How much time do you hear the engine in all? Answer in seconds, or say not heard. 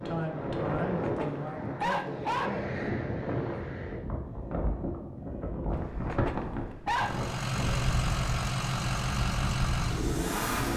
4 s.